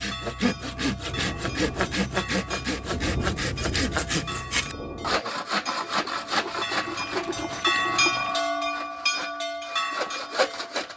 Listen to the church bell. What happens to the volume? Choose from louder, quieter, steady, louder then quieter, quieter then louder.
louder.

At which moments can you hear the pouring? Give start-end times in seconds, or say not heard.
5.8-8.3.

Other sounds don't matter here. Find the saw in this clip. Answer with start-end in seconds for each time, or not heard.
0.0-10.9.